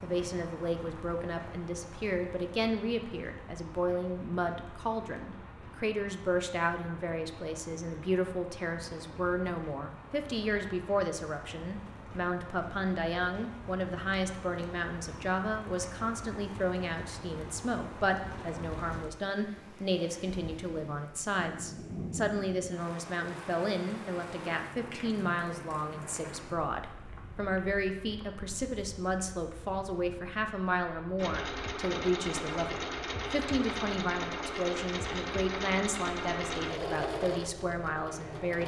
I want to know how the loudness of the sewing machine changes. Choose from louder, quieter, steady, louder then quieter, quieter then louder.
steady.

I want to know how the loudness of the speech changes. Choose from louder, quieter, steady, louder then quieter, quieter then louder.
steady.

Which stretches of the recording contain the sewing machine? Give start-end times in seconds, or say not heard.
31.1-38.6.